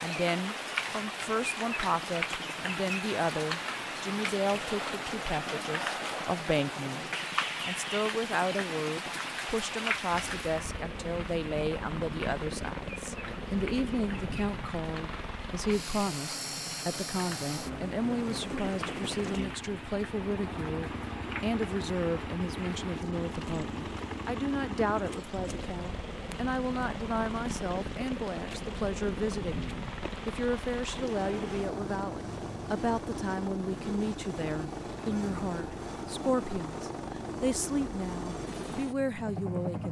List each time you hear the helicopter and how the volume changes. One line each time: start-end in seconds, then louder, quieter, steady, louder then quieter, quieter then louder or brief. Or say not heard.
0.0-39.8 louder.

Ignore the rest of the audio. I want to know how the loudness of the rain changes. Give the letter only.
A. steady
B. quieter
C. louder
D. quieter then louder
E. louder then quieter
B.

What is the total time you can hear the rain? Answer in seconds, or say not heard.
32 s.